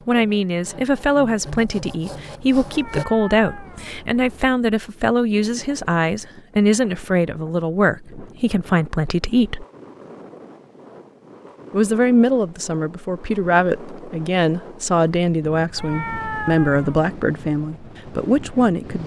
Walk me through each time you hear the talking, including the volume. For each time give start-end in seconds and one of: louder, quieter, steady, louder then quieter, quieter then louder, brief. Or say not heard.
0.1-9.7 steady
11.7-19.0 steady.